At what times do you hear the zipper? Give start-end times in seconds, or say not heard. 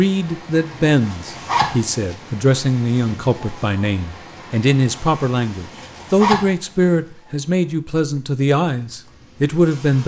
1.0-1.8, 5.7-6.5.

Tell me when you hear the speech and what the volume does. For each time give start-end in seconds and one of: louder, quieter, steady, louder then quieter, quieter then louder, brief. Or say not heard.
0.0-10.0 steady.